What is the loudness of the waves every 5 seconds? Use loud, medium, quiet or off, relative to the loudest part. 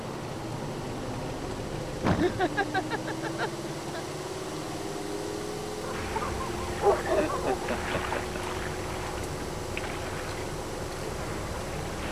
off, loud, loud.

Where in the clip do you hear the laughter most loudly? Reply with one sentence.
The loudest moment of the laughter is at 2 seconds.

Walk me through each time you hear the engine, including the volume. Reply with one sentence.
The engine can be heard from 0.0 to 12.0 s, at a steady volume.